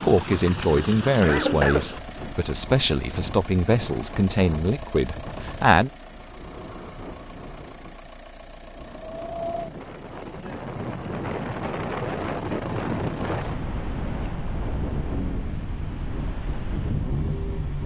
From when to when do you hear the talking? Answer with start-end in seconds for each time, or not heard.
0.0-5.9.